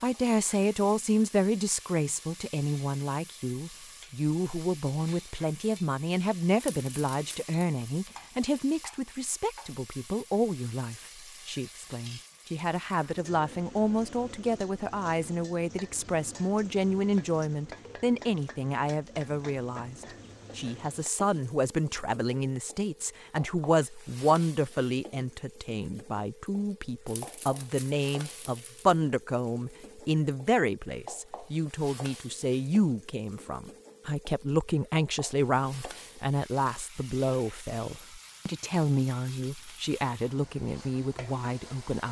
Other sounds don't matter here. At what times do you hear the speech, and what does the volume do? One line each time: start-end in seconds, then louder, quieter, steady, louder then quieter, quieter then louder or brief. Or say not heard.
0.0-42.0 steady.